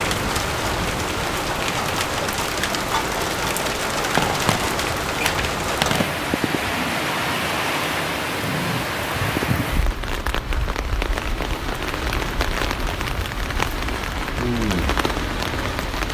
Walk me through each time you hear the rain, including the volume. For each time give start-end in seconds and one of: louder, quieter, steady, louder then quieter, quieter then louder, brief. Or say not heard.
0.0-16.0 steady.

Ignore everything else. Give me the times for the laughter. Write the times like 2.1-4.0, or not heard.
not heard.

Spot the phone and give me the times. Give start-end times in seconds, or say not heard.
4.2-6.2.